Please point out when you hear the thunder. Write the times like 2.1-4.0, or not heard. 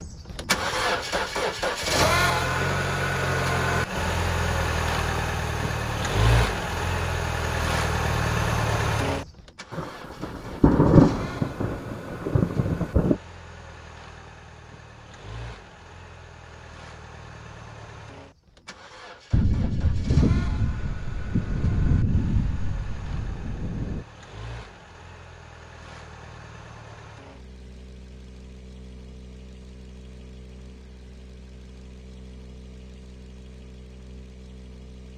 9.7-13.2, 19.3-24.1.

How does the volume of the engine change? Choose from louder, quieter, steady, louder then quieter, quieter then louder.
quieter.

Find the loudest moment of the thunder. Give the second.
11 s.